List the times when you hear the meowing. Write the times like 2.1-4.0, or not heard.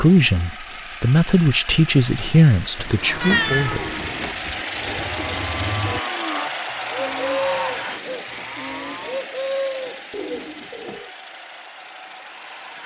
2.8-4.6.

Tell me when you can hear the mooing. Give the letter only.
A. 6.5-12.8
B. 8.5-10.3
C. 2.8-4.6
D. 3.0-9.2
D.